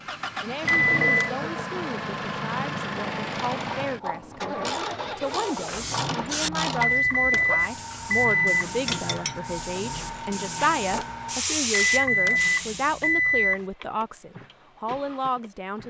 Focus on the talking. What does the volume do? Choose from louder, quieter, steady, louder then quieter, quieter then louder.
louder.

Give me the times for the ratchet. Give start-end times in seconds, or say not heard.
3.3-11.1.